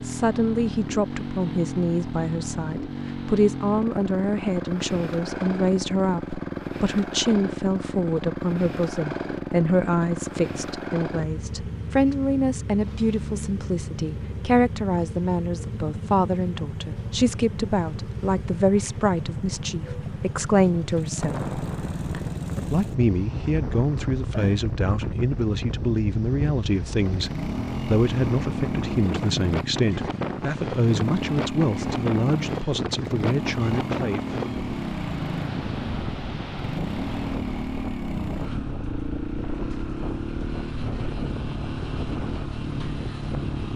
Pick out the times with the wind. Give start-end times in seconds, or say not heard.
21.1-43.7.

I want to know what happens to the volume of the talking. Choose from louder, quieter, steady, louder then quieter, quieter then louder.
steady.